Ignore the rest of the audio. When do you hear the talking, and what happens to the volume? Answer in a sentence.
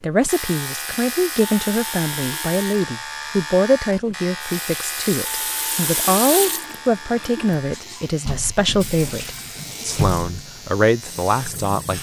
You can hear the talking from 0.0 to 11.9 s, at a steady volume.